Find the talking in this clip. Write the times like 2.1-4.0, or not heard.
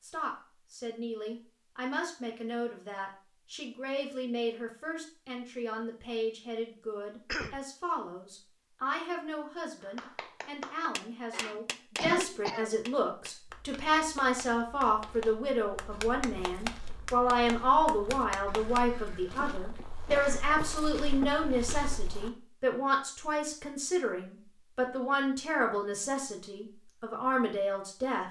0.0-28.2.